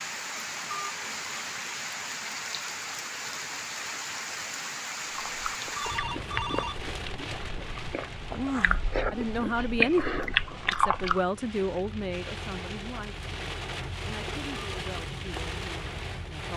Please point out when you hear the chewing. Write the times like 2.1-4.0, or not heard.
5.0-11.2.